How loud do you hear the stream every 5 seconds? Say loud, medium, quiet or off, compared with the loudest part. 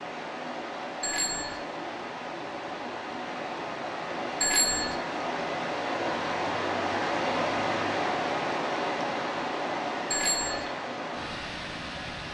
medium, loud, medium.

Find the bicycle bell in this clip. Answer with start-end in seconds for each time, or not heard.
1.0-1.6, 4.4-5.0, 10.1-10.7.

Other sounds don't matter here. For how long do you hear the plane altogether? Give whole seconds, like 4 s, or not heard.
not heard.